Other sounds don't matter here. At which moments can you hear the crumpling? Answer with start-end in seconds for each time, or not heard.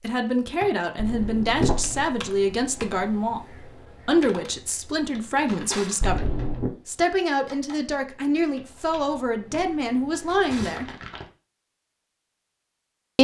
0.9-2.0, 6.0-6.7, 8.9-9.7, 10.5-11.2.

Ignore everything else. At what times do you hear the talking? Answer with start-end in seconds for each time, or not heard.
0.0-10.9.